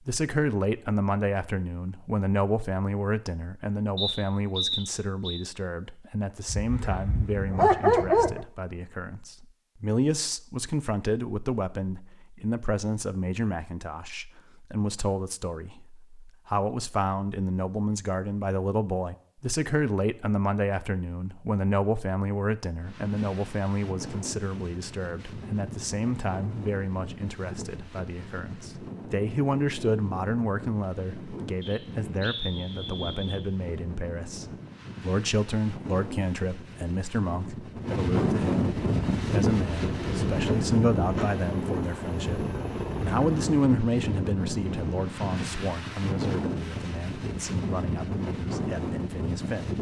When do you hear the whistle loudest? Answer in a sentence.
The loudest moment of the whistle is at 5 seconds.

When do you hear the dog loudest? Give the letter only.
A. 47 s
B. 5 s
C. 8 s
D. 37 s
C.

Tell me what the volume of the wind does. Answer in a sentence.
The volume of the wind goes up.